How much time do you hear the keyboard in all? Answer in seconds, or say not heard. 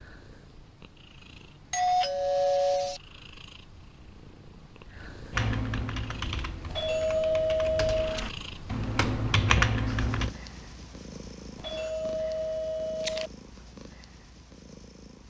5 s.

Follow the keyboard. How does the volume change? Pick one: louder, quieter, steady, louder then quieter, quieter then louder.
quieter then louder.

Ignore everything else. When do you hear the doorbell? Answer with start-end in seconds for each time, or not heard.
1.7-3.0, 6.7-8.2, 11.6-13.3.